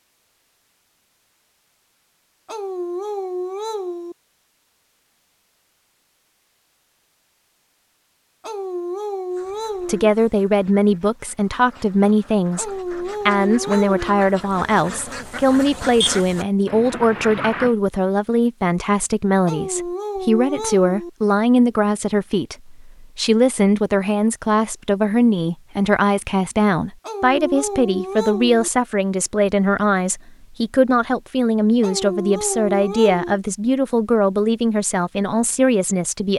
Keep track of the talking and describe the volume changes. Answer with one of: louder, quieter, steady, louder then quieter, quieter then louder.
steady.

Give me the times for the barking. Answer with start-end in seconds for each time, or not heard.
2.5-4.2, 8.4-10.1, 12.6-14.2, 19.4-21.1, 27.0-28.7, 31.8-33.4.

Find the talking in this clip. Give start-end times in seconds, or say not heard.
9.8-36.3.